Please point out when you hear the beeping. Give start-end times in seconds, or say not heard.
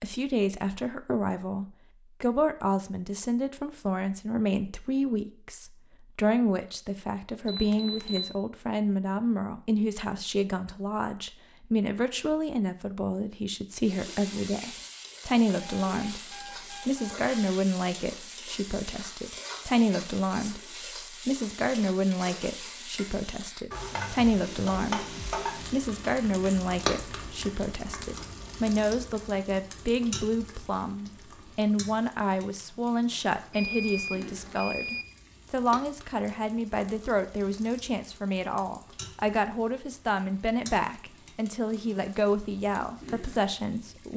7.5-8.3, 15.6-17.4, 33.5-35.0.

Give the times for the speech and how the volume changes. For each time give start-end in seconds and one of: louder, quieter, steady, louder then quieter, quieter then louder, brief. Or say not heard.
0.0-44.1 steady.